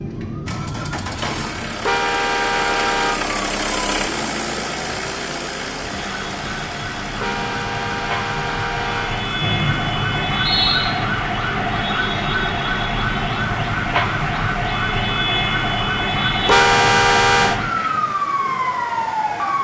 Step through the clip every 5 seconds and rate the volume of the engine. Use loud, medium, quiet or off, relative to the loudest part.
loud, medium, quiet, quiet.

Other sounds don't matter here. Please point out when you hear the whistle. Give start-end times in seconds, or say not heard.
9.4-10.9.